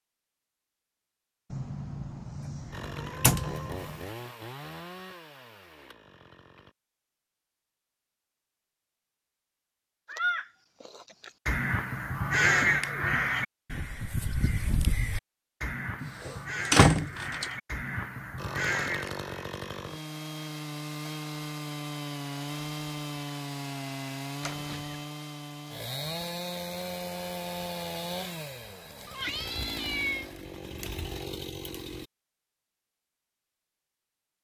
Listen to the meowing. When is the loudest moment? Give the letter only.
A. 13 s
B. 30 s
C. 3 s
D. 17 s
B.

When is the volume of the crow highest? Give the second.
13 s.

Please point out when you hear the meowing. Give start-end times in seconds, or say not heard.
1.5-4.2, 29.1-30.2.